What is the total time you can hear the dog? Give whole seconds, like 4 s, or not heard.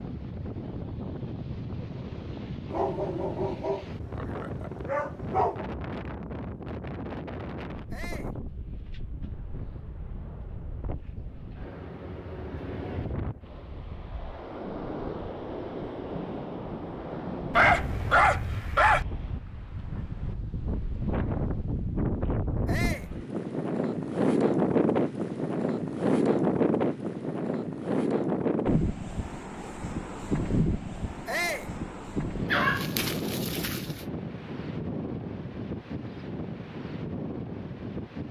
6 s.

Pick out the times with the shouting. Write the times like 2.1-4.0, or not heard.
7.9-8.3, 22.6-23.1, 31.2-31.7.